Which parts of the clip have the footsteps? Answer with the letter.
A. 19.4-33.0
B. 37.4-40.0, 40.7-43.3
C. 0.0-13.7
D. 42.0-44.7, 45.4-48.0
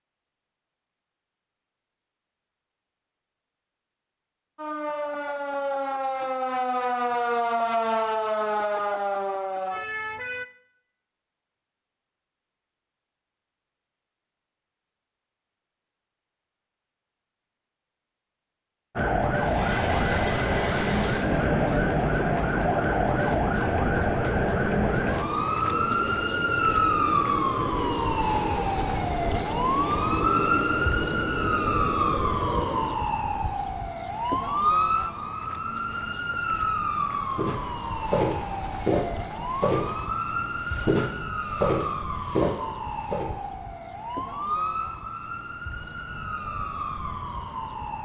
B.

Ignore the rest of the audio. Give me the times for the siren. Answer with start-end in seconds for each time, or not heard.
4.5-10.4, 18.9-48.0.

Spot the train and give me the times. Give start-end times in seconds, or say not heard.
19.4-33.0.